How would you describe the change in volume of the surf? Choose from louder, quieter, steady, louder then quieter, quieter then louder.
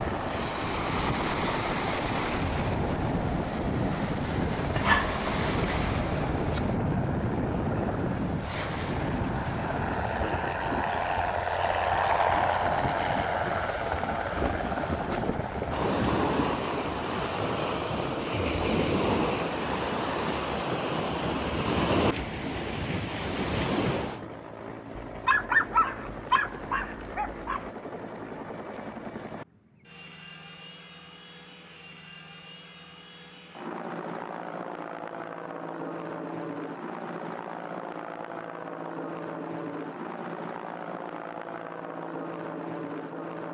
quieter then louder.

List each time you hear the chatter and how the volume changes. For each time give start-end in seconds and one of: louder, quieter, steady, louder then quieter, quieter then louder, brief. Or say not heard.
not heard.